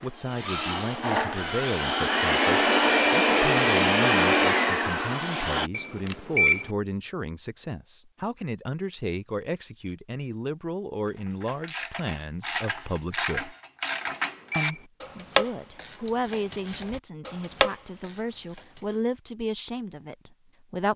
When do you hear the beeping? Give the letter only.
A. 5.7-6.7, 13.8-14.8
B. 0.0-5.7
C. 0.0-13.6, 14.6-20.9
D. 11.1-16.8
A.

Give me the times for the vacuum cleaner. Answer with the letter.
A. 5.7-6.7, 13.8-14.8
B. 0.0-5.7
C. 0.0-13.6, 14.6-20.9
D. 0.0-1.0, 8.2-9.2
B.